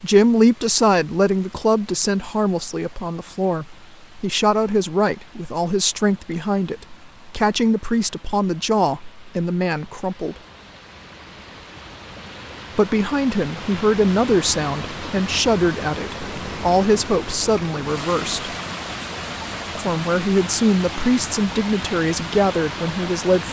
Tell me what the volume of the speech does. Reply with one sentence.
The loudness of the speech stays about the same.